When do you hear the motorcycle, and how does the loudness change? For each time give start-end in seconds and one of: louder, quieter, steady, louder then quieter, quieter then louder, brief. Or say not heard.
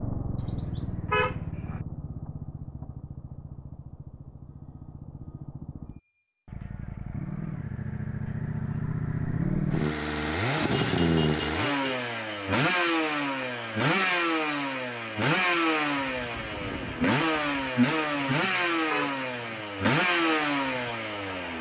0.0-21.5 louder.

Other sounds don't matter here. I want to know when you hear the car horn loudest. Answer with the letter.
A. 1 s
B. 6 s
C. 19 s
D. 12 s
A.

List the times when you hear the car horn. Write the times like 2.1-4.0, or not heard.
0.3-1.9, 10.8-12.1, 18.4-19.6.